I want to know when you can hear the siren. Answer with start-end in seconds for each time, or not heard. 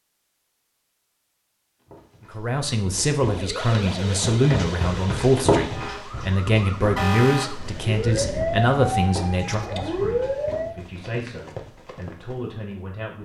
3.3-10.8.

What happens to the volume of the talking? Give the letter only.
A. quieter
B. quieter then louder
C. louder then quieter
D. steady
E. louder
A.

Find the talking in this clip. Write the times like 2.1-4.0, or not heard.
2.3-13.2.